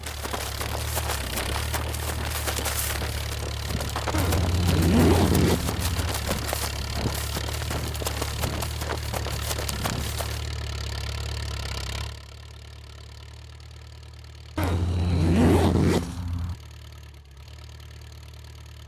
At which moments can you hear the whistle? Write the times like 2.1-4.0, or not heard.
not heard.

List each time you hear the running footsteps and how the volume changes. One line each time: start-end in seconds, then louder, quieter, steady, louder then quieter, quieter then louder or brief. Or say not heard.
0.0-10.5 steady.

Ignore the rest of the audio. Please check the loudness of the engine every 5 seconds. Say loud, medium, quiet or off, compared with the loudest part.
loud, loud, loud, quiet.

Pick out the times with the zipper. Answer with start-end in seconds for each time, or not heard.
4.1-6.2, 14.6-16.6.